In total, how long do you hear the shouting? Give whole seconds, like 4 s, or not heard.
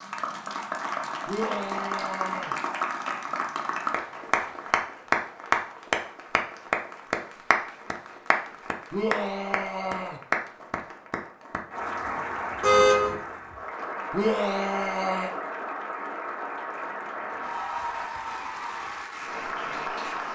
4 s.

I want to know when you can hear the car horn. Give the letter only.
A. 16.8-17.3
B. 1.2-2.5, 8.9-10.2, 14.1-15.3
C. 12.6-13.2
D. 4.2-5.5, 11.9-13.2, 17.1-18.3
C.